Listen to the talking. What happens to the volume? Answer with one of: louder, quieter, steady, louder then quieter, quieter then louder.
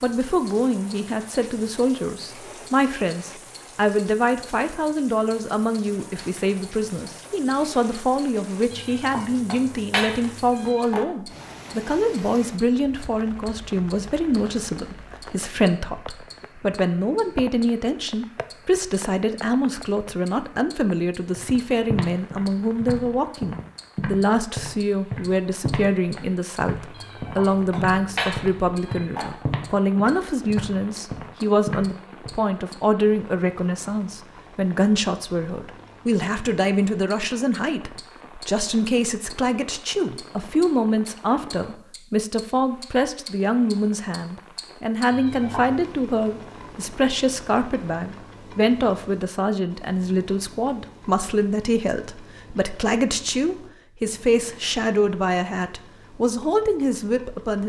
steady.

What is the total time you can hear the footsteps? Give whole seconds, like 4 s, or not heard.
11 s.